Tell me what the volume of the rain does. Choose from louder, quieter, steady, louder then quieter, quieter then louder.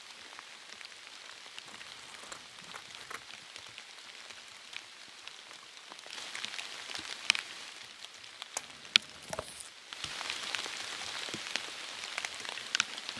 louder.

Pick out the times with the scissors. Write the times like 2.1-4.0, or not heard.
1.6-3.2, 8.6-9.7.